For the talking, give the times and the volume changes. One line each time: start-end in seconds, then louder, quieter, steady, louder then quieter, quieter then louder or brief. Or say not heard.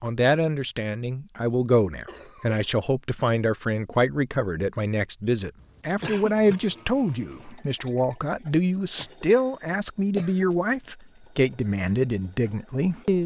0.0-13.2 steady.